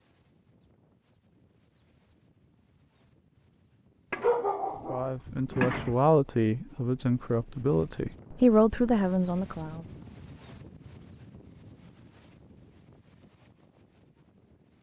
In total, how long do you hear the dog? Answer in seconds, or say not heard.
2 s.